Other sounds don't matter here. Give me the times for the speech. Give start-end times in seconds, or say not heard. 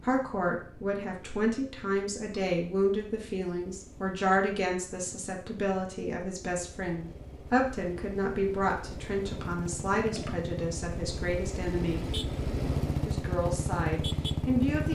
0.0-12.1, 13.1-14.8.